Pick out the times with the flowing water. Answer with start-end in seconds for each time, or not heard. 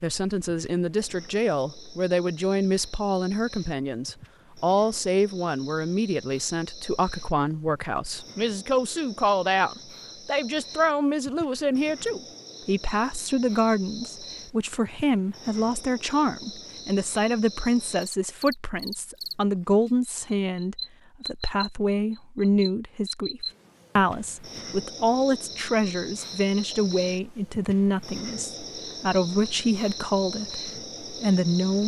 not heard.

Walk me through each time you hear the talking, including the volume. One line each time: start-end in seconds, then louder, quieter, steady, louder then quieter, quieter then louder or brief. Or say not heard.
0.0-31.8 steady.